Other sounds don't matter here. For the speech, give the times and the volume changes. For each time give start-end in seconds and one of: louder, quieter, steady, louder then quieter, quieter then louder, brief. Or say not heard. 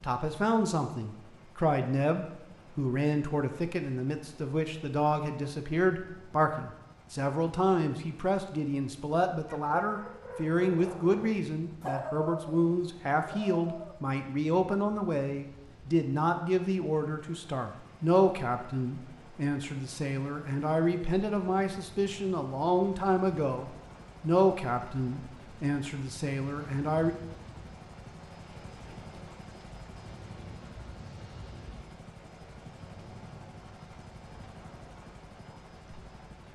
0.0-27.1 steady.